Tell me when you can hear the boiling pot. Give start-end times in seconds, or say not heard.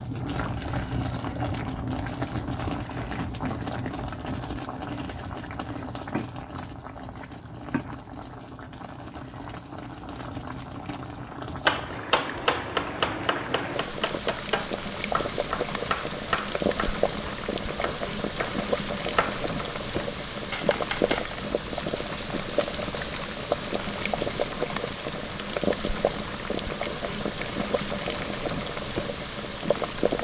0.0-30.1.